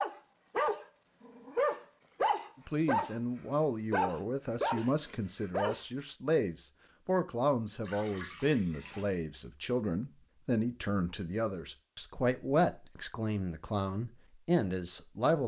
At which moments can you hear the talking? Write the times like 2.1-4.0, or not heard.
2.6-15.4.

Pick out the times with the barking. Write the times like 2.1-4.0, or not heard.
0.0-5.8.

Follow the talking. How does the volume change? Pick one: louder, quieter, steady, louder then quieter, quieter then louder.
steady.